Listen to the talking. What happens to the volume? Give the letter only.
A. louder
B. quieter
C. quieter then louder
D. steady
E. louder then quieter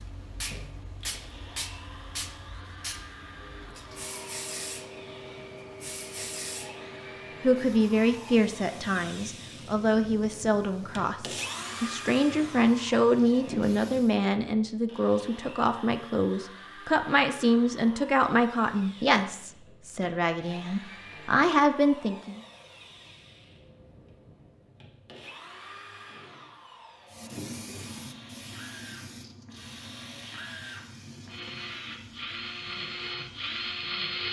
D.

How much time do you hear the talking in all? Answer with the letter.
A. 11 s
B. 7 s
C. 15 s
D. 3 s
C.